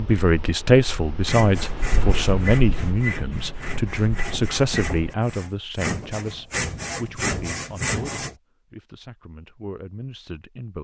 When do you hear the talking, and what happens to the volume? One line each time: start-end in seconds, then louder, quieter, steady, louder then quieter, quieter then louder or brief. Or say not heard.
0.0-10.8 quieter.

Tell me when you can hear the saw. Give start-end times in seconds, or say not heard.
1.2-8.3.